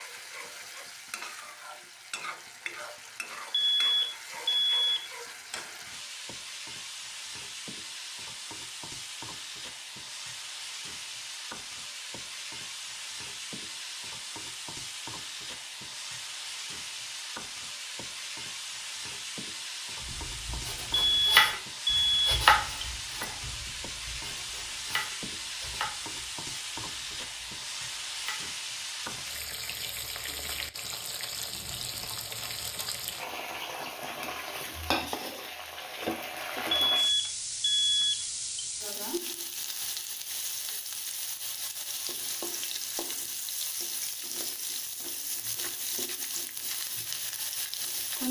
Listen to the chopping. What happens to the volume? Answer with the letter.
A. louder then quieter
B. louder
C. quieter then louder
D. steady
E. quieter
E.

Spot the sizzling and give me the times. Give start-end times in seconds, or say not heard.
0.0-48.2.